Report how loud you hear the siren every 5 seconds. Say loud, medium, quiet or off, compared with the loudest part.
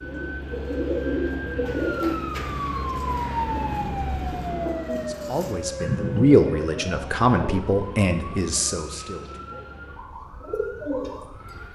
loud, medium, quiet.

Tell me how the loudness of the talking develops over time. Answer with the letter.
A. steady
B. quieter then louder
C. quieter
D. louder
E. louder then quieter
E.